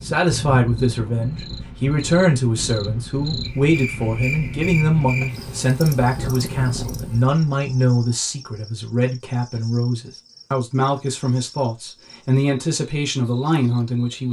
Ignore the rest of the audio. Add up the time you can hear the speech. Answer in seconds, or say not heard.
14 s.